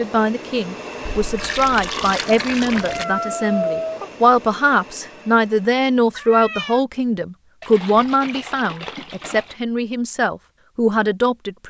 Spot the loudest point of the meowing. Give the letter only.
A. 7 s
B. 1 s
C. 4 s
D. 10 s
C.